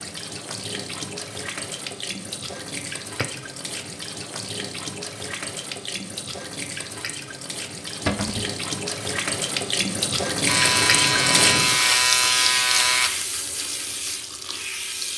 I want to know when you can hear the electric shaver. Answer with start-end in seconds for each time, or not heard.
10.4-13.1.